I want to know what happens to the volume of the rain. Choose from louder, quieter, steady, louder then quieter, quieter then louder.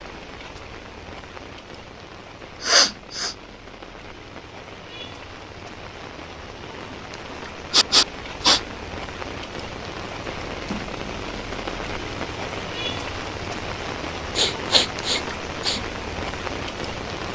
louder.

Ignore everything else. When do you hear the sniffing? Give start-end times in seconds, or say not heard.
2.6-3.4, 7.7-8.6, 14.3-15.8.